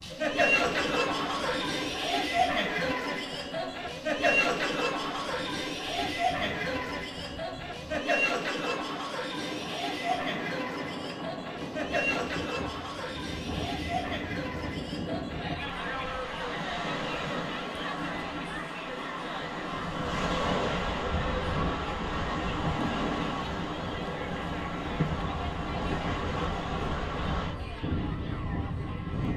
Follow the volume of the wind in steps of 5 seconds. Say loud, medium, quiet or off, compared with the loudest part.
quiet, quiet, medium, medium, loud, loud.